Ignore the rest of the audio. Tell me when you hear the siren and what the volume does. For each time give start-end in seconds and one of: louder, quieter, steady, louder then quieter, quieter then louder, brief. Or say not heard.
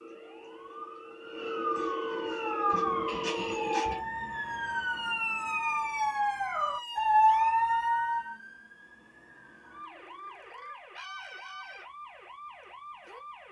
0.0-13.4 quieter.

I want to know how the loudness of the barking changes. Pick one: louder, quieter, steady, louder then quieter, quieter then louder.
louder.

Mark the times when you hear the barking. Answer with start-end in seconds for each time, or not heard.
2.3-8.3.